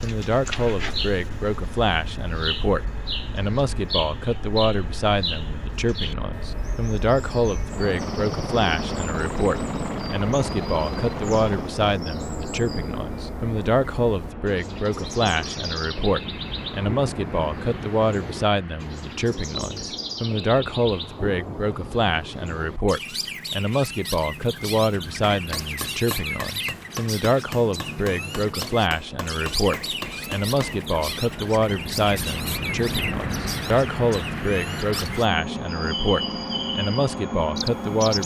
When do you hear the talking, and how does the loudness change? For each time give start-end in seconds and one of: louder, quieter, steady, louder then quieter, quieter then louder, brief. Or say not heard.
0.0-38.2 steady.